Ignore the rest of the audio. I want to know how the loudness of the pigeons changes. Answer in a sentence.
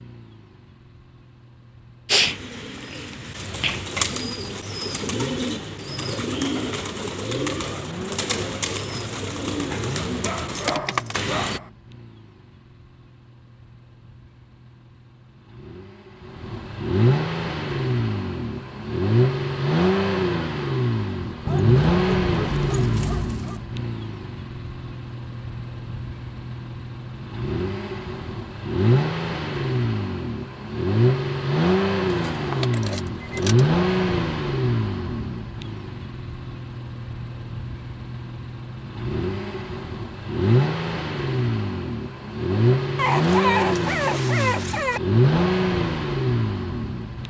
The loudness of the pigeons stays about the same.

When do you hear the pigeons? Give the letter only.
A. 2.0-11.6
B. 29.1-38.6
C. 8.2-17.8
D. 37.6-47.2
A.